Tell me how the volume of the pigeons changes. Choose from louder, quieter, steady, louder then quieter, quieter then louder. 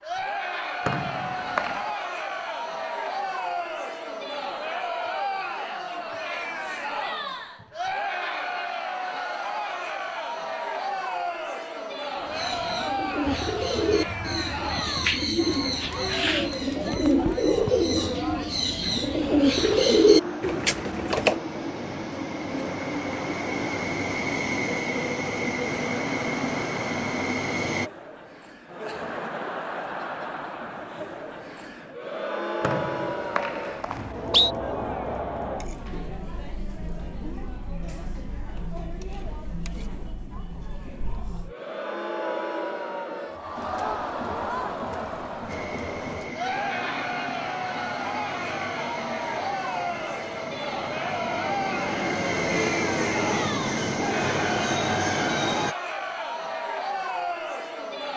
louder.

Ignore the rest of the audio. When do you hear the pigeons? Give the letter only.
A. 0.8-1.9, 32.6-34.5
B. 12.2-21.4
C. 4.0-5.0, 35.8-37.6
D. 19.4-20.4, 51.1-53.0
B.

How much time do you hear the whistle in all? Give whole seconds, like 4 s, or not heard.
3 s.